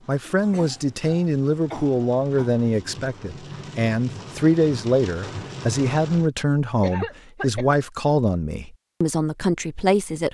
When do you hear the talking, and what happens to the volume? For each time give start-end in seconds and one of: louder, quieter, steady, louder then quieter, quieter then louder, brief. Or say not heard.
0.1-10.2 steady.